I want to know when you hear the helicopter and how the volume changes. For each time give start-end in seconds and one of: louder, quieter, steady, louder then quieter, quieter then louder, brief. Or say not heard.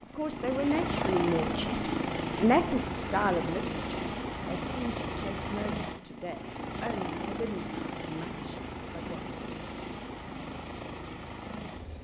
0.0-12.0 quieter.